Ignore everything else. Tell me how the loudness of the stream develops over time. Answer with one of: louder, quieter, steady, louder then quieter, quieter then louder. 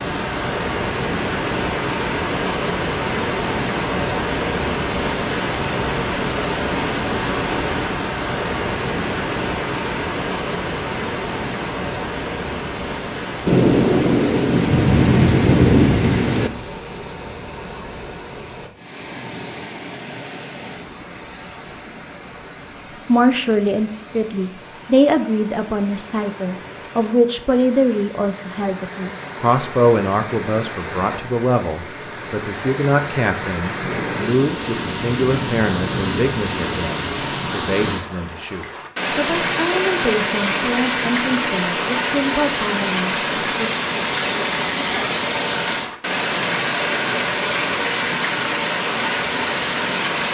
quieter then louder.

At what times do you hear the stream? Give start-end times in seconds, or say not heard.
0.0-50.3.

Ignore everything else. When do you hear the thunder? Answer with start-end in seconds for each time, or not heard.
13.4-16.5, 33.8-36.8.